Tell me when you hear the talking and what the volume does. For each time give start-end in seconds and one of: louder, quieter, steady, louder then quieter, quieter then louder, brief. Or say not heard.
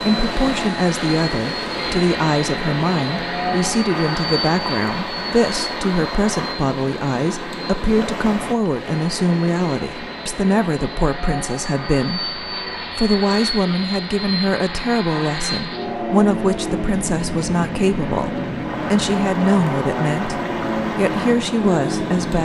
0.0-22.4 steady.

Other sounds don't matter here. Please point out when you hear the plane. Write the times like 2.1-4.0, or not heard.
0.0-22.4.